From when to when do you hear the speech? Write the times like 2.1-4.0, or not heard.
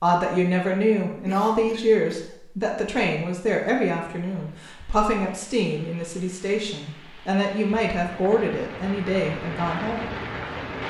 0.0-10.1.